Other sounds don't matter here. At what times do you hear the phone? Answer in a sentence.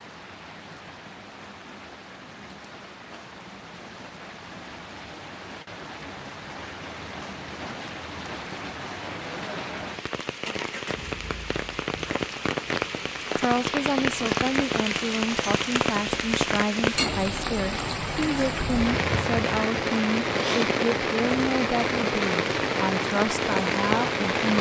You can't hear the phone here.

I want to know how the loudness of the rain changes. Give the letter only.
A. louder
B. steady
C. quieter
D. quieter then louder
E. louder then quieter
A.